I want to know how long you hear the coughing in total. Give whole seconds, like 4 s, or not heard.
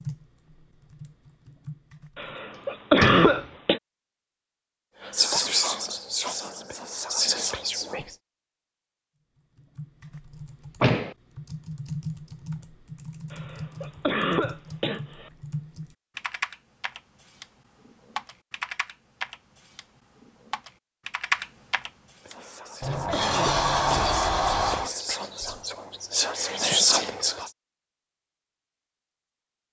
5 s.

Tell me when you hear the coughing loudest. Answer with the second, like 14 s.
3 s.